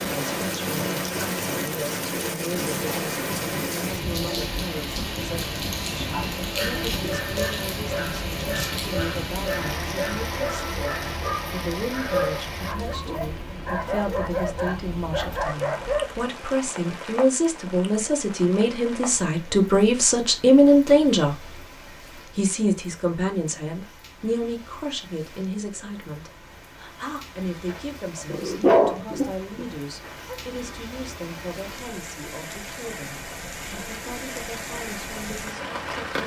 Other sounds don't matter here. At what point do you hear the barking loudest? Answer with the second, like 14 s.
29 s.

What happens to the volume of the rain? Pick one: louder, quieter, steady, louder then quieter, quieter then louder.
quieter then louder.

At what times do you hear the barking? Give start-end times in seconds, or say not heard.
6.0-16.2, 27.6-30.4.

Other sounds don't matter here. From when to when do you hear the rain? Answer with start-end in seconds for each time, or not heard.
0.0-36.2.